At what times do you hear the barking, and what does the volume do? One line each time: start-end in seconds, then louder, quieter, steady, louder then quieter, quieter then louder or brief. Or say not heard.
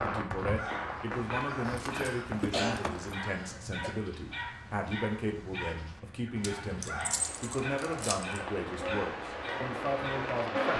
0.3-10.3 steady.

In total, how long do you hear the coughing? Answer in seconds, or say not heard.
2 s.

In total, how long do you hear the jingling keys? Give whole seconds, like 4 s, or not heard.
4 s.